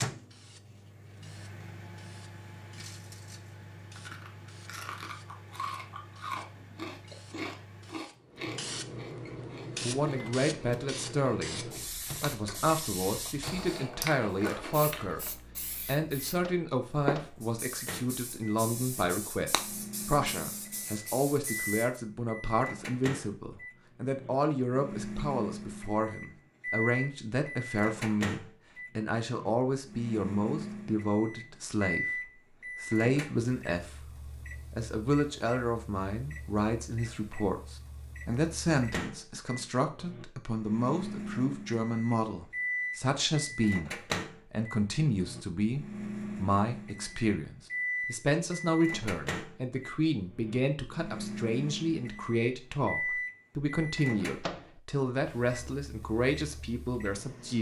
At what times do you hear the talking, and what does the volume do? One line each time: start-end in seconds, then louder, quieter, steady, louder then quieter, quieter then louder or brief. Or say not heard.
9.8-57.5 steady.